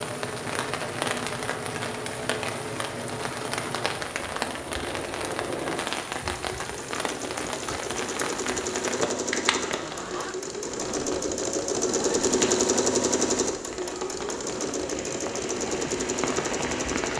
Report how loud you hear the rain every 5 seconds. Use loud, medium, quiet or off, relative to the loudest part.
loud, loud, medium, loud.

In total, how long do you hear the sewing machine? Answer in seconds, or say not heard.
17 s.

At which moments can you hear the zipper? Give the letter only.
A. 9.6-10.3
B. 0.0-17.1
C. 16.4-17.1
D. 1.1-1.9
A.